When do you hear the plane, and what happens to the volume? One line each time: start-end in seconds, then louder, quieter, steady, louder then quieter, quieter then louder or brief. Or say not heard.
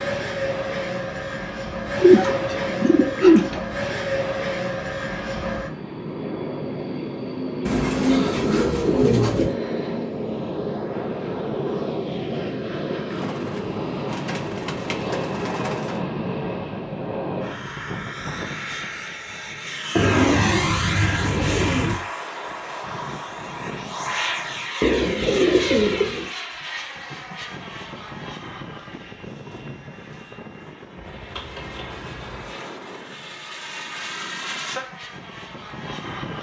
0.0-36.3 quieter.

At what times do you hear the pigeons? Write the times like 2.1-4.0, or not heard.
2.0-3.6, 7.7-9.6, 13.1-15.9, 19.9-21.9, 24.8-26.3, 31.1-32.5.